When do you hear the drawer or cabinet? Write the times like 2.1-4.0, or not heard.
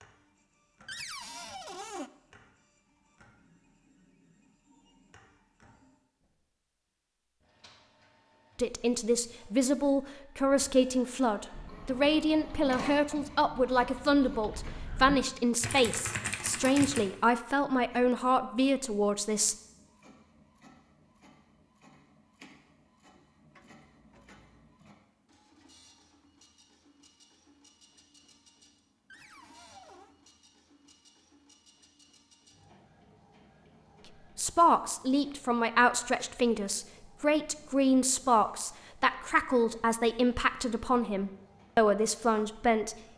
0.8-2.1, 23.6-24.6, 29.1-30.1.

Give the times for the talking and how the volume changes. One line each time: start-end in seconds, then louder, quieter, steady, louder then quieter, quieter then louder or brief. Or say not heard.
8.6-19.6 steady
34.4-43.1 steady.